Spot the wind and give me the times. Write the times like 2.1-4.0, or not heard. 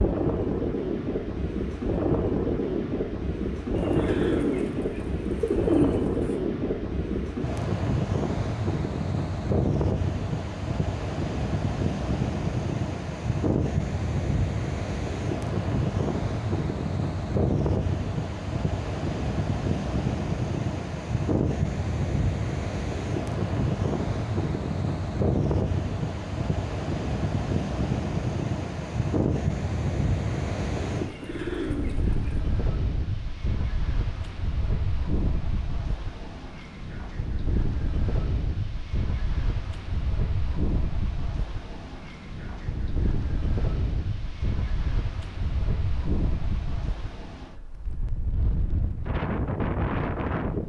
0.0-50.6.